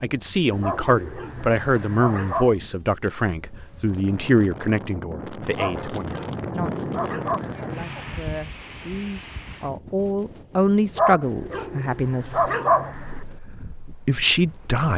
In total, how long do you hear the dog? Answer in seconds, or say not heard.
6 s.